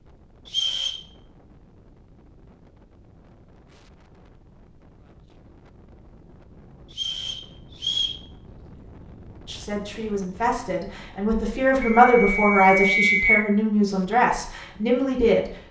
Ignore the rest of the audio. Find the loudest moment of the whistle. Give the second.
13 s.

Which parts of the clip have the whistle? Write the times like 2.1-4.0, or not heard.
0.5-1.0, 6.9-8.2, 11.8-13.5.